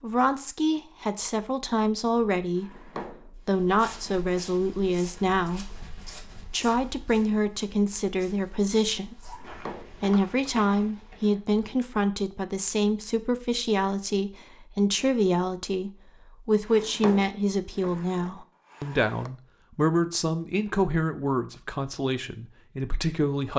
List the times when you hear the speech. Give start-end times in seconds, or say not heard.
0.0-23.5.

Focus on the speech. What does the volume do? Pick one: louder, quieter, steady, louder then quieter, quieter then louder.
steady.